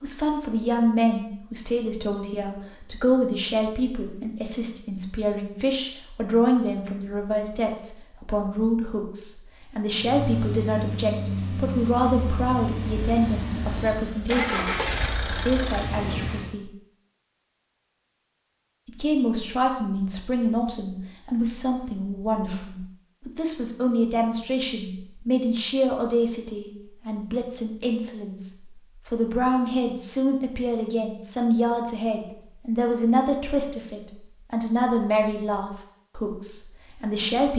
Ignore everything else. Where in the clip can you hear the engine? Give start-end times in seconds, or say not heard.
9.9-16.6.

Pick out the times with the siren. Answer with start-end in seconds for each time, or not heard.
not heard.